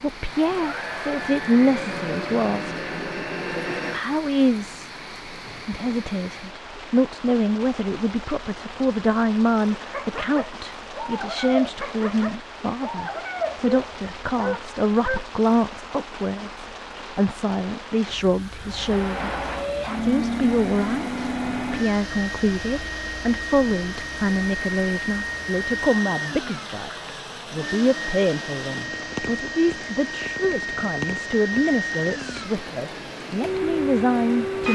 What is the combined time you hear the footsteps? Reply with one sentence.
The footsteps can't be heard in this clip.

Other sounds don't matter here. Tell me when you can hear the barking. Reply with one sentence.
You can hear the barking from 9.8 to 15.2 s.